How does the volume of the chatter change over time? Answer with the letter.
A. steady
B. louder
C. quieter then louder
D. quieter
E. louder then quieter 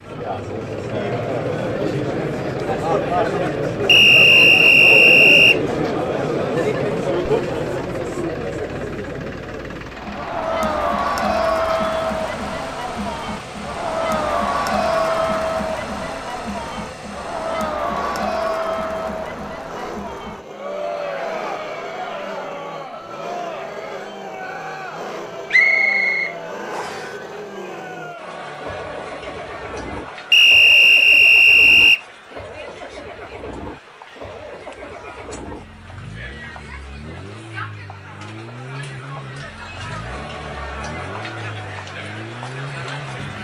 D.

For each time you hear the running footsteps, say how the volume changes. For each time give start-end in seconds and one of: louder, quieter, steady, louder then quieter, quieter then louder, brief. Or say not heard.
not heard.